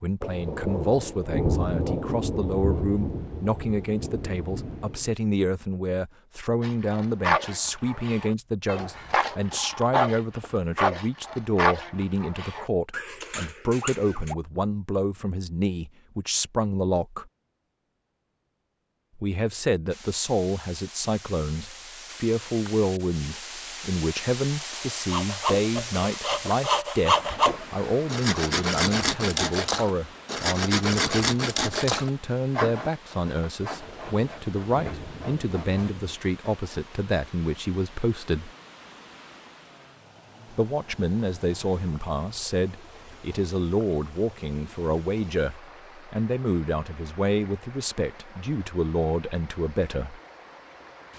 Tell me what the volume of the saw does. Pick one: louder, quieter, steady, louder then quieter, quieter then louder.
quieter.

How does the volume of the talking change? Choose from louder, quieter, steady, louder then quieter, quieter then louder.
steady.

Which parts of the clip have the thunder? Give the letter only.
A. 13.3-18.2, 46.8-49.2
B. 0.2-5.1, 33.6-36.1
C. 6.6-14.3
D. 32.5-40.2
B.